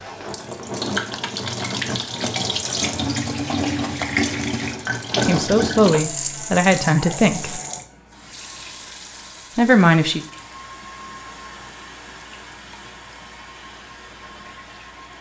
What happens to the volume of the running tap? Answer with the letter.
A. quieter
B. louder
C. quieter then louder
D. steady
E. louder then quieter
A.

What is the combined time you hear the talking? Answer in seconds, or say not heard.
3 s.